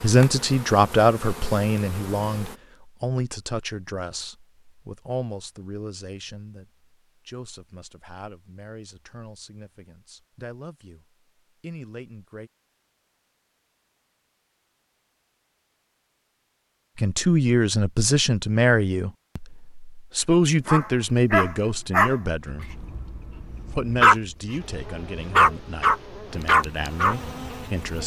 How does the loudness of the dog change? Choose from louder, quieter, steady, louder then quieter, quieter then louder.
quieter then louder.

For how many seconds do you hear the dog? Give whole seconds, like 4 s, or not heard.
7 s.